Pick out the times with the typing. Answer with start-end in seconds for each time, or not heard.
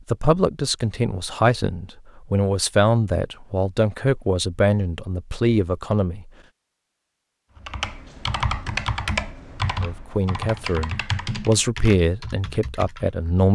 7.5-13.2.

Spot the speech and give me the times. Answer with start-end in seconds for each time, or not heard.
0.1-6.3, 9.8-13.5.